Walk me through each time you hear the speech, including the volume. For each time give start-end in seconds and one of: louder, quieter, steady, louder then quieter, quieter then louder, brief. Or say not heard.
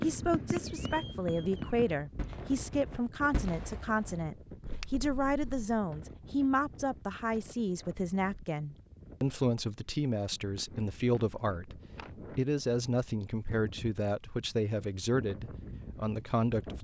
0.0-16.7 steady.